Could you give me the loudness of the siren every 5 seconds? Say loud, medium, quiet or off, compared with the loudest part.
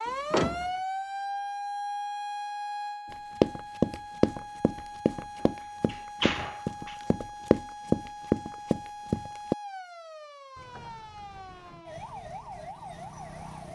loud, medium, medium.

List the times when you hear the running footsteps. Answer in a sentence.
You can hear the running footsteps from 3.1 to 9.6 s.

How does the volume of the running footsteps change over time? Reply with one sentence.
The loudness of the running footsteps goes down, then up.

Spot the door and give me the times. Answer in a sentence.
You can hear the door from 0.1 to 0.7 s, from 5.4 to 7.0 s and from 10.6 to 11.8 s.